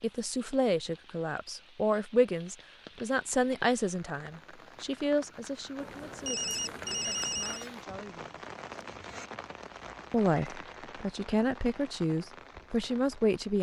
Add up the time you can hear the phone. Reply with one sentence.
You can hear the phone for 2 seconds altogether.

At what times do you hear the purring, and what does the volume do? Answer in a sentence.
You can't hear the purring here.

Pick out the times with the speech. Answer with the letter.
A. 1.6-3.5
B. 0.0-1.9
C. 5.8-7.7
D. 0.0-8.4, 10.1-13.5
D.